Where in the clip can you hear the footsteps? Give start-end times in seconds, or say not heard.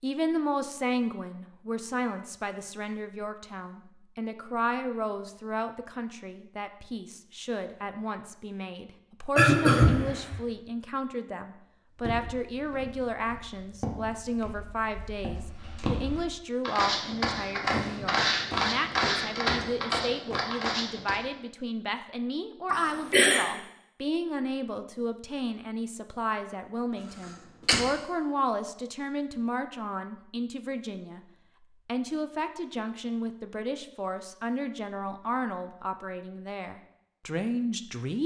11.9-21.2.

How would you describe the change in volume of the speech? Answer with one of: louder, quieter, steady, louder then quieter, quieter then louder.
steady.